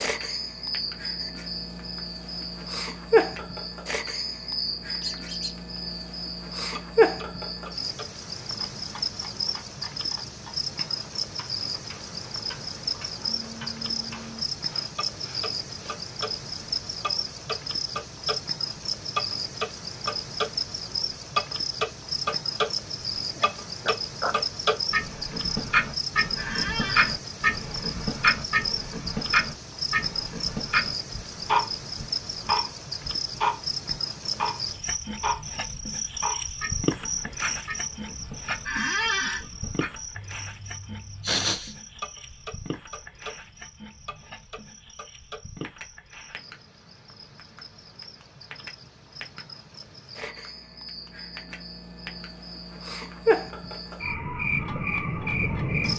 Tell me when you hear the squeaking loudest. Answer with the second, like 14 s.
39 s.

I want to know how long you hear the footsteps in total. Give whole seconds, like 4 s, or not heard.
not heard.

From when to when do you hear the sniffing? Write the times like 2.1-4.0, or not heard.
14.1-16.0, 23.4-24.4, 41.2-41.8.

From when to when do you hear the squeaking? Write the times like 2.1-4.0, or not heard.
5.0-5.5, 26.4-27.1, 38.6-39.5.